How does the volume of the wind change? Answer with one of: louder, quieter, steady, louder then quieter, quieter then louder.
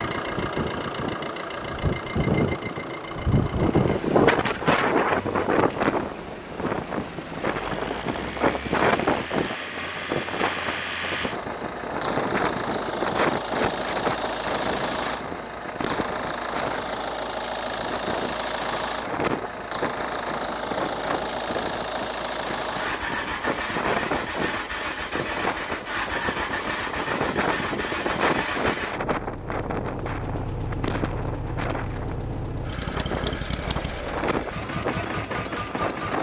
quieter.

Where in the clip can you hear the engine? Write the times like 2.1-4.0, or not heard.
0.0-36.1.